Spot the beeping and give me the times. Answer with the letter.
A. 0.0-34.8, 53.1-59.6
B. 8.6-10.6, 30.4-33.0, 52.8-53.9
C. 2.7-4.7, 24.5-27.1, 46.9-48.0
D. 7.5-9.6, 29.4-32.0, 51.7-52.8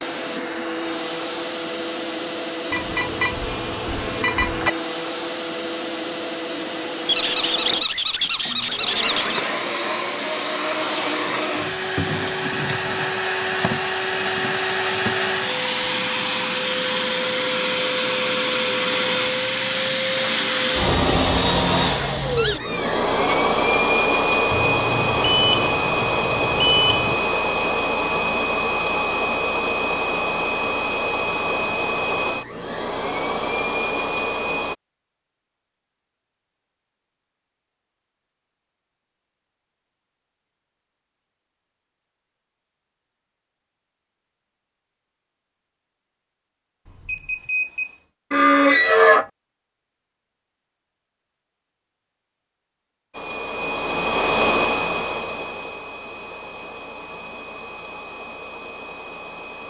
C.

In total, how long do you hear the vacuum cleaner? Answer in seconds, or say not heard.
41 s.